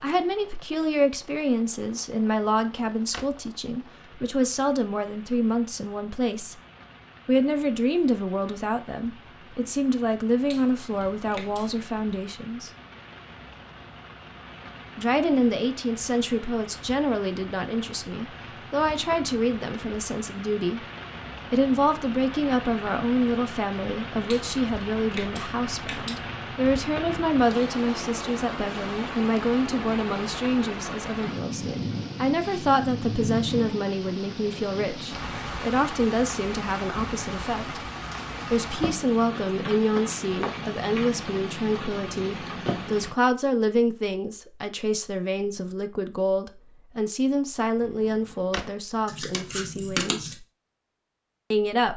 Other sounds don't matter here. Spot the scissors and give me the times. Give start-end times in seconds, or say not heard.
10.5-11.8, 24.3-26.1, 49.0-50.4.